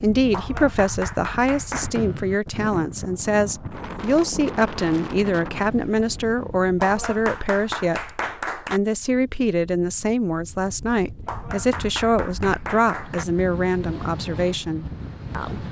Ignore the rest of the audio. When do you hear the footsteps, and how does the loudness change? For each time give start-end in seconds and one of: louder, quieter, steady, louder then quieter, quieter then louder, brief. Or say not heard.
not heard.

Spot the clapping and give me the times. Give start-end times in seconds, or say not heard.
0.3-2.0, 6.8-8.8, 11.2-13.2.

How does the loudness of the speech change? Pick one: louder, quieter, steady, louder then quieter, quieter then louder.
steady.